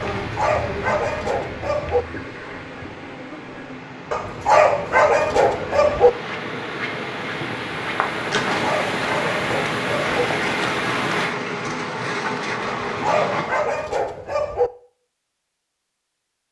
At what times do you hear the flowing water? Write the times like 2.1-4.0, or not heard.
0.0-11.3.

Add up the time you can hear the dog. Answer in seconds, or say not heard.
8 s.